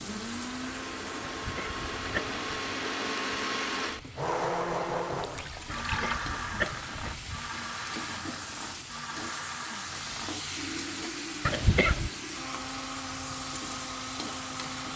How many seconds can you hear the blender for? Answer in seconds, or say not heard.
15 s.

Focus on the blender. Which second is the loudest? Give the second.
5 s.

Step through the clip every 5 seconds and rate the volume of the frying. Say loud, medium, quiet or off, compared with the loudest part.
medium, loud, loud.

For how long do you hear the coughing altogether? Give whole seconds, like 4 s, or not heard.
4 s.